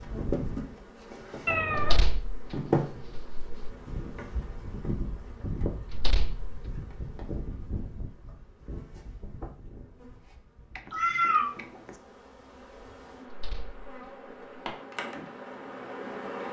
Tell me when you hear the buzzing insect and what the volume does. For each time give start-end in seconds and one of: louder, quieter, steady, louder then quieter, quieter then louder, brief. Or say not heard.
0.0-16.4 quieter then louder.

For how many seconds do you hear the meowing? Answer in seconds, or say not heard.
2 s.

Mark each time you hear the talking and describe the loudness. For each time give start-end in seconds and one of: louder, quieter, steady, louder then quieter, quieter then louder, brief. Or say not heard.
not heard.